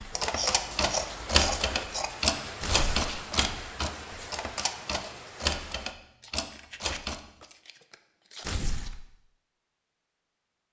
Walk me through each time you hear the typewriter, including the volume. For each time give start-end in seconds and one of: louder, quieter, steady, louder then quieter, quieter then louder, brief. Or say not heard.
0.0-7.5 quieter.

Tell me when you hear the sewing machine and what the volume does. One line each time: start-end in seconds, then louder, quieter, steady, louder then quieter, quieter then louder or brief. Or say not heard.
not heard.